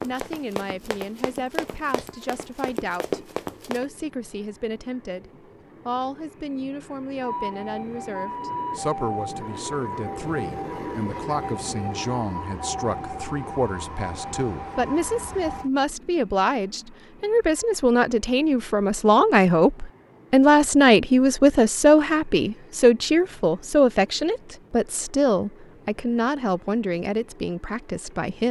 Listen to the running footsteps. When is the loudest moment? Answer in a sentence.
The volume of the running footsteps peaks at 3 seconds.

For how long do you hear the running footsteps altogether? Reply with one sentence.
You can hear the running footsteps for 4 seconds altogether.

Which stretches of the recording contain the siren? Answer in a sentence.
The siren can be heard from 7.2 to 15.7 s.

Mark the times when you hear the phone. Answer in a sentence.
The phone can't be heard in this clip.